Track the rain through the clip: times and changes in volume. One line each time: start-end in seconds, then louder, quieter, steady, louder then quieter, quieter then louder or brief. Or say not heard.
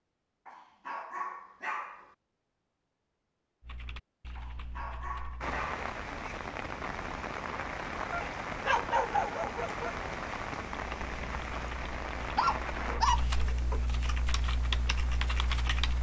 5.4-15.9 quieter.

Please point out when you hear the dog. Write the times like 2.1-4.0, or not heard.
0.5-2.1, 4.3-5.8, 8.1-10.0, 12.3-13.8.